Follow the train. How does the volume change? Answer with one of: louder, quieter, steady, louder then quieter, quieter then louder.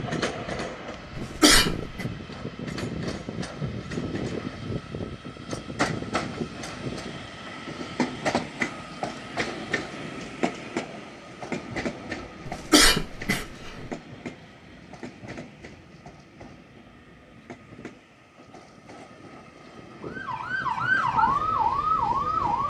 quieter.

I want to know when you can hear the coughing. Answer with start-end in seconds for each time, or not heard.
1.1-2.0, 12.4-13.8.